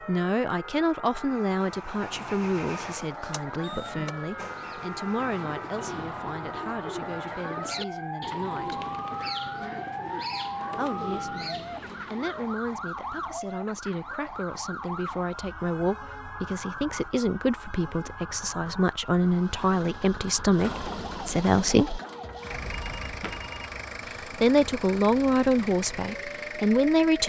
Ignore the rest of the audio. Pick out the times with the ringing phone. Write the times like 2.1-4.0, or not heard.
22.6-23.8.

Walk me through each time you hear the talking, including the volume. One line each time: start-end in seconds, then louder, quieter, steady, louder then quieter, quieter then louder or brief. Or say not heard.
0.1-8.8 quieter
10.8-22.0 louder
24.4-27.2 brief.